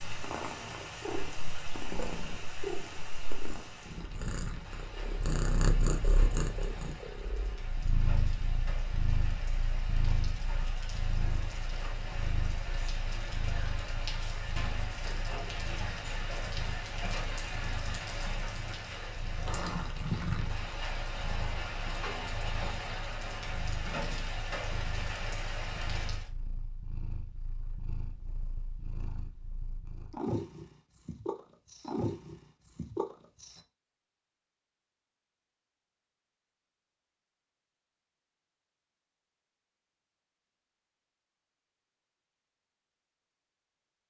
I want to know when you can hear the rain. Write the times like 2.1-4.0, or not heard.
0.0-26.3.